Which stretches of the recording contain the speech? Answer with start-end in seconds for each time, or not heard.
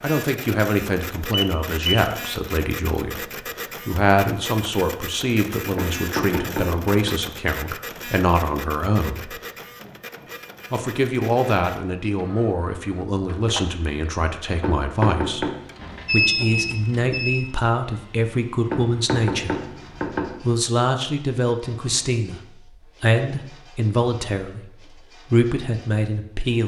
0.0-9.4, 10.7-15.5, 16.1-19.6, 20.4-26.6.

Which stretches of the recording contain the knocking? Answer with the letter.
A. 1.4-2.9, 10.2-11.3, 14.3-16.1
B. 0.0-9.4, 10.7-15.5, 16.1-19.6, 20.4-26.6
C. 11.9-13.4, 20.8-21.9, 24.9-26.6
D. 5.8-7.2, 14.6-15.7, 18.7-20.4
D.